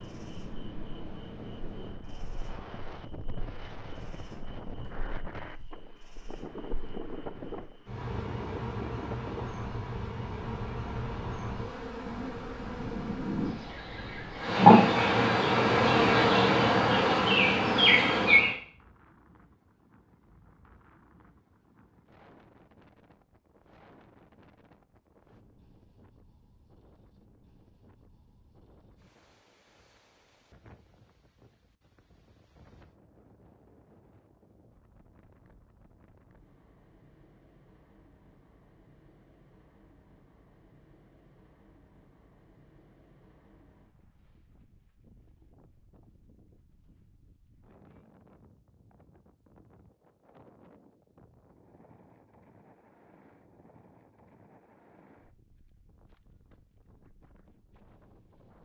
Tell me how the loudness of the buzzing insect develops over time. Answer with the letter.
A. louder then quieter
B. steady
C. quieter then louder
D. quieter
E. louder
E.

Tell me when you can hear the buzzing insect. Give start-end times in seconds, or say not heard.
0.0-18.6.